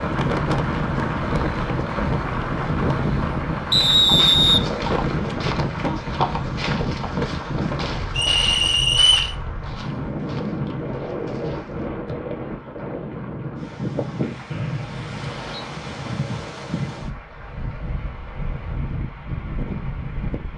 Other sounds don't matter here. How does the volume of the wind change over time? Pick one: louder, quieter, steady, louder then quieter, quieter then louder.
quieter.